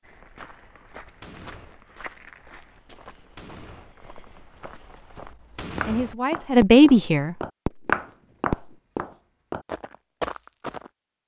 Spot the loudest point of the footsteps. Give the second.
8 s.